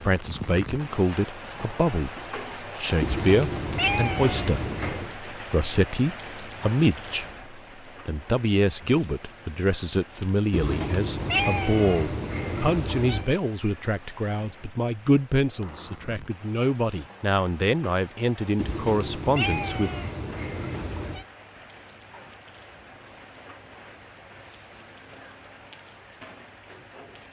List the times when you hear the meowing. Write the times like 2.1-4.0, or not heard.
3.0-5.2, 10.5-13.3, 18.6-21.2.